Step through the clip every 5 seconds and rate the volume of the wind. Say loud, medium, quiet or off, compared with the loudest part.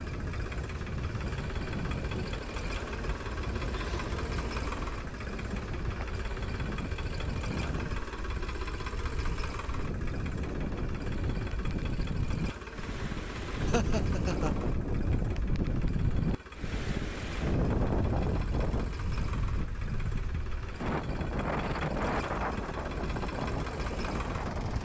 medium, medium, loud, loud, loud.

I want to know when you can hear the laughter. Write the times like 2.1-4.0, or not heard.
13.6-14.7.